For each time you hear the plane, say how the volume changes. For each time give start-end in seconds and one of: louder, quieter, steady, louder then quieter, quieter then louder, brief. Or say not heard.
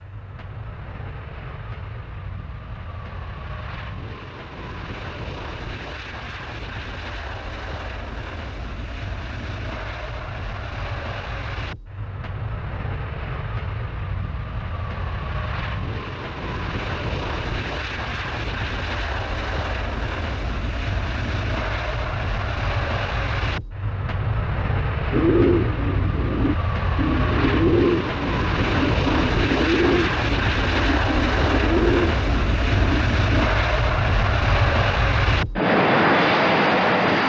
0.0-37.2 louder.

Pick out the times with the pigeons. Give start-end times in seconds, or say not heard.
25.1-33.5.